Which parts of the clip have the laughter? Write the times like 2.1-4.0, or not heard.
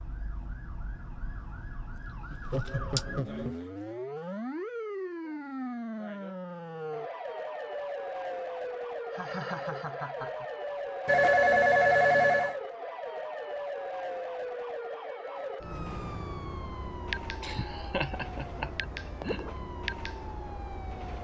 2.3-3.5, 9.1-10.4, 17.4-19.4.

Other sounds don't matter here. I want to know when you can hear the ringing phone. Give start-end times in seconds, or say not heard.
11.1-12.6.